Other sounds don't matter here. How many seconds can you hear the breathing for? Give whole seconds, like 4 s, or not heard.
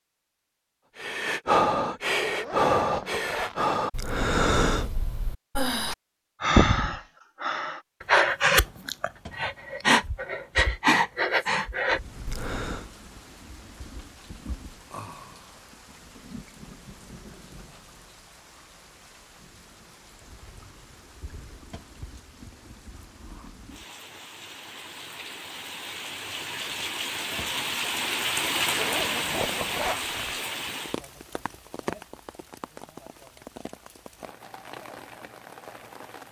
12 s.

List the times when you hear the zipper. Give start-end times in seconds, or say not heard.
2.2-3.8, 28.7-30.4.